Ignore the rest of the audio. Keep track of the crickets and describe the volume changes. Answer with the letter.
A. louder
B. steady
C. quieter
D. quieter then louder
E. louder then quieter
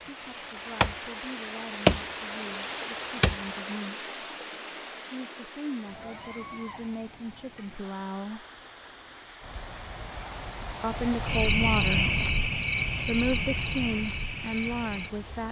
E.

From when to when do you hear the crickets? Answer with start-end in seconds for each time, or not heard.
6.2-15.4.